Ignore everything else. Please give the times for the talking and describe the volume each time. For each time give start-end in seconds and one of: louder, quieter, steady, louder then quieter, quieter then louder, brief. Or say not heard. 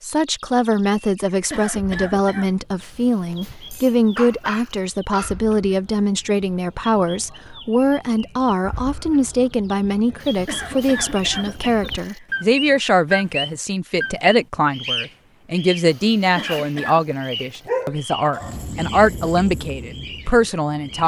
0.0-21.0 steady.